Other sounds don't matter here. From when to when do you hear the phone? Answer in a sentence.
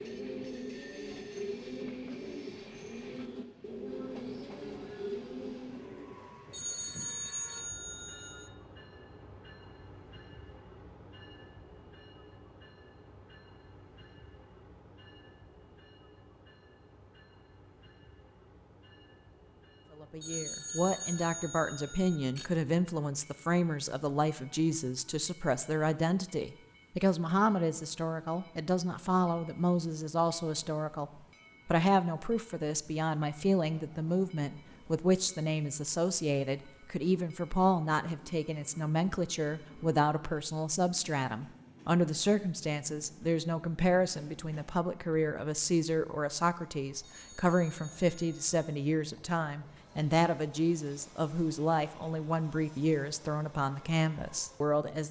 The phone can be heard from 6.5 to 8.5 s, from 20.2 to 22.5 s and from 47.0 to 48.6 s.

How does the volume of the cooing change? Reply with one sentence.
The loudness of the cooing stays about the same.